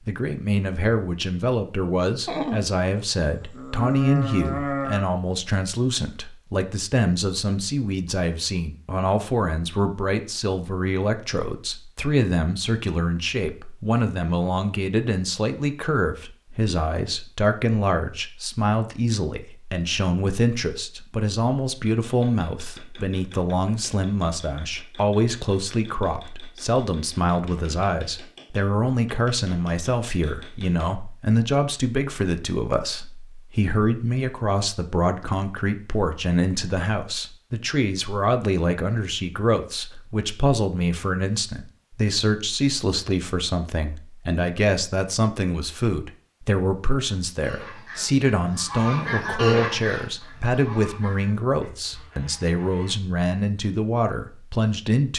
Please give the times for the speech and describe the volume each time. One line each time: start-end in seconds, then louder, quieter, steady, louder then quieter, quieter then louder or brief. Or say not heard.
0.1-55.1 steady.